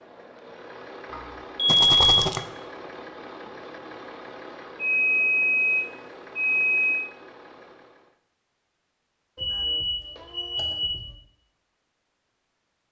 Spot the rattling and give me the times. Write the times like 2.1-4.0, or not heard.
1.6-2.5.